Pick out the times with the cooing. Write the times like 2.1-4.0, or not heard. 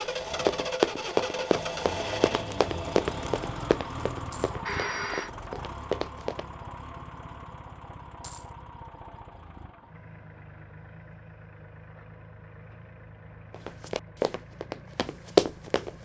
not heard.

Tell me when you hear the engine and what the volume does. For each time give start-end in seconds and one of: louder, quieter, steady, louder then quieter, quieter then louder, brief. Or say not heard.
0.0-15.9 quieter.